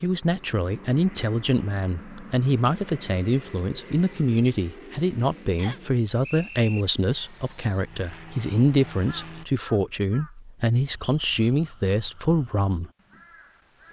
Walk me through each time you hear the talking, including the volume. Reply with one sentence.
You can hear the talking from 0.0 to 12.9 s, at a steady volume.